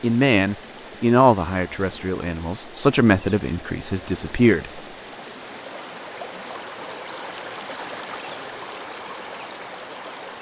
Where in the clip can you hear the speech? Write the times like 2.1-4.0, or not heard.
0.0-4.8.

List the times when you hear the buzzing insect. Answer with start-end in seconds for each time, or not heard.
not heard.